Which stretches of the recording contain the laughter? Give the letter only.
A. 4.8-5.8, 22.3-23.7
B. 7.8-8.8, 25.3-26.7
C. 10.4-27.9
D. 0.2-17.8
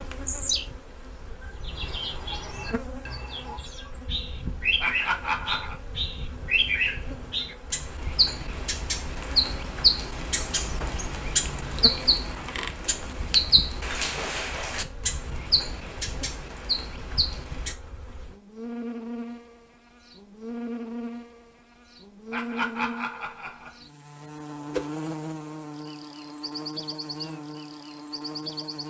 A.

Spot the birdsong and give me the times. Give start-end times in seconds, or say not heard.
0.2-17.8.